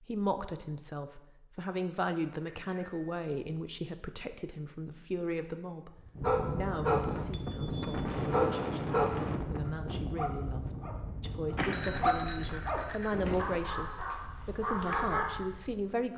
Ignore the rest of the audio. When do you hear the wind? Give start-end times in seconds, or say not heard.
6.2-16.1.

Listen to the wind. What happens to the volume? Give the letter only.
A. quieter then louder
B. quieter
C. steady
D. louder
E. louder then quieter
B.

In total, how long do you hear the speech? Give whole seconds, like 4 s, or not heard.
16 s.